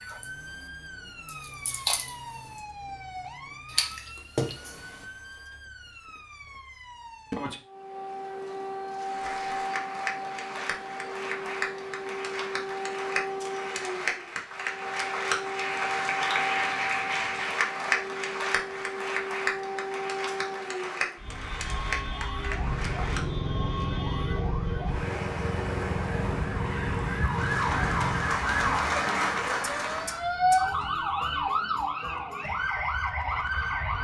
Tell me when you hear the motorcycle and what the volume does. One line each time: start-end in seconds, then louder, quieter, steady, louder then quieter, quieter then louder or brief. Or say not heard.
22.4-28.4 steady.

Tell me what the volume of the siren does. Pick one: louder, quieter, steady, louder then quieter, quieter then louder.
louder.